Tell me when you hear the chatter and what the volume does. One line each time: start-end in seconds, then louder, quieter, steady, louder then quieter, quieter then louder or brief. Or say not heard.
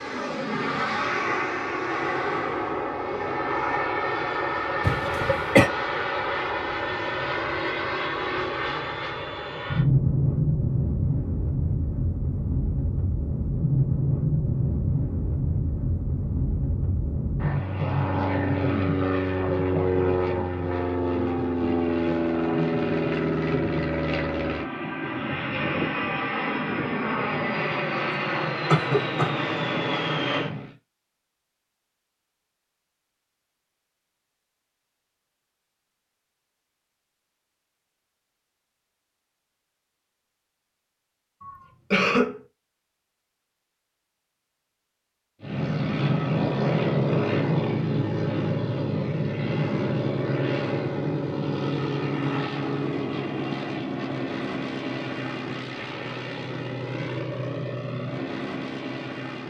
not heard.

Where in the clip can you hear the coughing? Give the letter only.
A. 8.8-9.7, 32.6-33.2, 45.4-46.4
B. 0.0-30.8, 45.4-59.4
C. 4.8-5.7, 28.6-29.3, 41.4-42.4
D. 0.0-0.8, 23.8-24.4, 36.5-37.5
C.